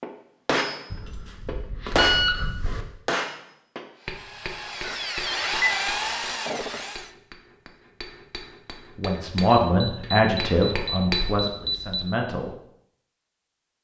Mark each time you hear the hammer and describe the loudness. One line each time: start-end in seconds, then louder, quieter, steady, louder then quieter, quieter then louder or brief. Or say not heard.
0.0-11.3 quieter then louder.